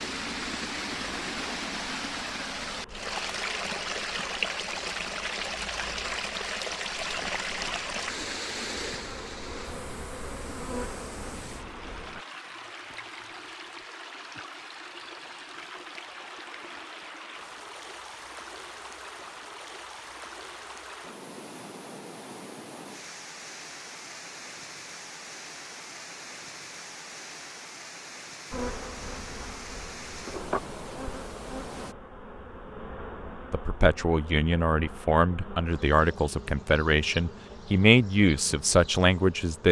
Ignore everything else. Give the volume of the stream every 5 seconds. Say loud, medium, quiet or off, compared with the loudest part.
loud, loud, medium, medium, medium, medium, medium, off.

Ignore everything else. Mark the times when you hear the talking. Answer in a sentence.
You can hear the talking from 33.5 to 39.6 s.